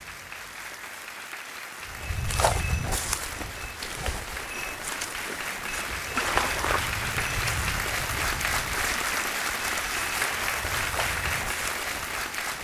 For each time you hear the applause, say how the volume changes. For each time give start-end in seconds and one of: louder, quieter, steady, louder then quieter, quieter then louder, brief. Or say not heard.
0.0-12.5 louder.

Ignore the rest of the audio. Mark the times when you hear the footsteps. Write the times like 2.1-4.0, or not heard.
1.9-12.5.